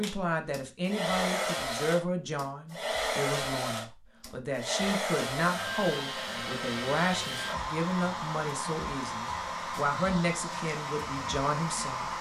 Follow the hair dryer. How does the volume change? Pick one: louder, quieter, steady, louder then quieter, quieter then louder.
steady.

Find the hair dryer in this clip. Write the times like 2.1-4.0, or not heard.
0.0-12.1.